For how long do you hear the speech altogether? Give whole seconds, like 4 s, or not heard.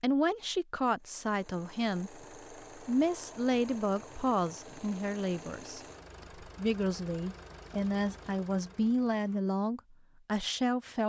11 s.